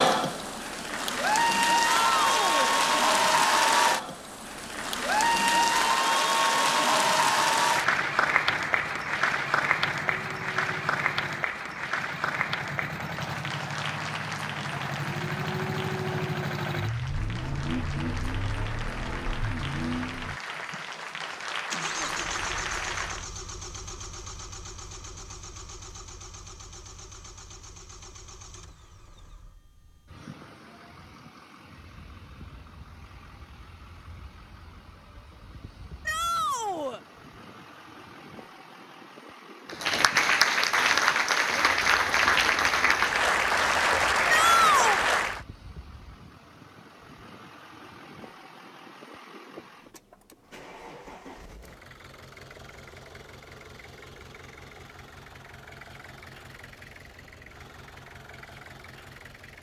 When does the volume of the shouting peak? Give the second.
45 s.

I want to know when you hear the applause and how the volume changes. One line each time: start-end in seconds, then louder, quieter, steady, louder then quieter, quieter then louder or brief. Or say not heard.
0.0-23.2 quieter
39.6-45.4 steady.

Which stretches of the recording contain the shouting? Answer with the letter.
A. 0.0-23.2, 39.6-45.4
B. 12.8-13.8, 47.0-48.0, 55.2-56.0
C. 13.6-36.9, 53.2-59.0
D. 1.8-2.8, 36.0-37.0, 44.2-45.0
D.